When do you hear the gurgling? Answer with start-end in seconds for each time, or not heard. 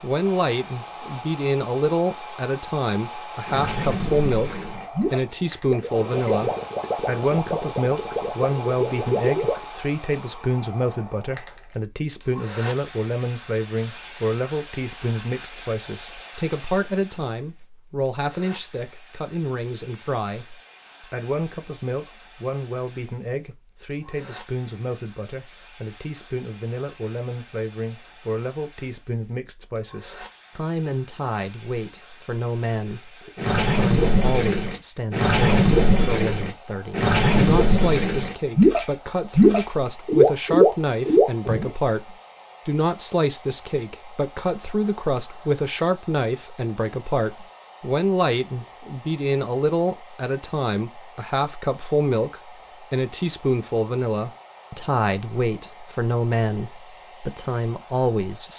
3.5-9.7, 33.4-41.7.